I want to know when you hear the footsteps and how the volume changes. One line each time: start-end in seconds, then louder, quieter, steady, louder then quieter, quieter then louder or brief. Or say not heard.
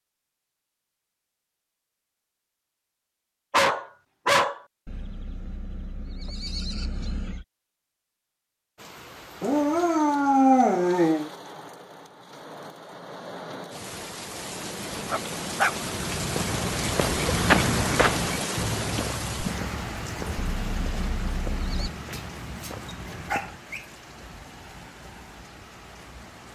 15.8-23.6 quieter.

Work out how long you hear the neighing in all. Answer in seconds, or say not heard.
4 s.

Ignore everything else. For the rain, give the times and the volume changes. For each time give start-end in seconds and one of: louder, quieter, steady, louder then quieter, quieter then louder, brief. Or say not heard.
8.8-26.5 louder then quieter.